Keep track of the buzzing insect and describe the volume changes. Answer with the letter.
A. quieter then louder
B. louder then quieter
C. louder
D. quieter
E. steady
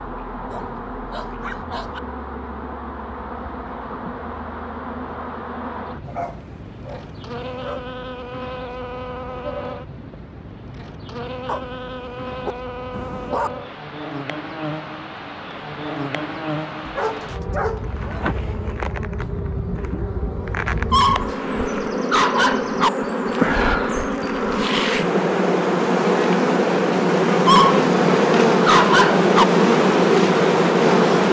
C.